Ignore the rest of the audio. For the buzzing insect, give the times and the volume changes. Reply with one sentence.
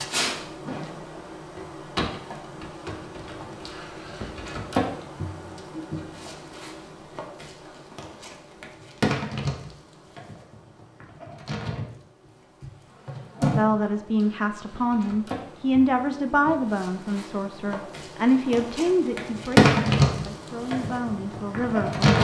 You can hear the buzzing insect from 0.0 to 22.1 s, getting louder.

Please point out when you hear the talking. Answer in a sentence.
You can hear the talking from 13.6 to 22.1 s.